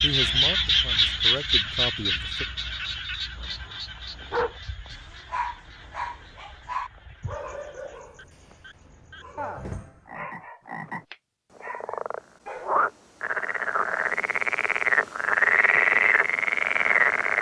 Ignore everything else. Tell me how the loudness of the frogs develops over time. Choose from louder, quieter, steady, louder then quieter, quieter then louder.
quieter then louder.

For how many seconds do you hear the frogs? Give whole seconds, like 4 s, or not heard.
17 s.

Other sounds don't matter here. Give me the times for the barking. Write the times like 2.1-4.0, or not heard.
4.3-12.7.